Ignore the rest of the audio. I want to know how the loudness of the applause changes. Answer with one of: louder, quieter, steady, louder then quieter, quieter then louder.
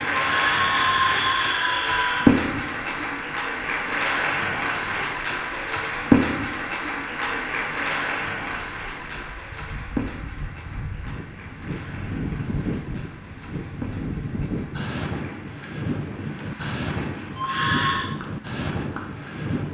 quieter.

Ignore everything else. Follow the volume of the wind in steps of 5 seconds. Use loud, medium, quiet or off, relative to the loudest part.
quiet, quiet, loud, loud.